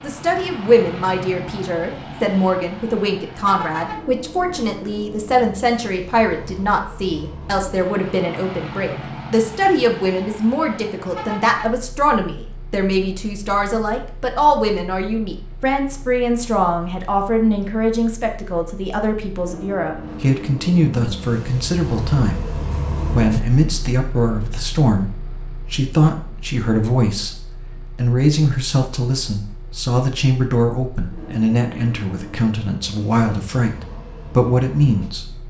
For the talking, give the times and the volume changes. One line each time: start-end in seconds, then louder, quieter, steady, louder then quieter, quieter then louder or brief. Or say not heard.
0.0-35.2 steady.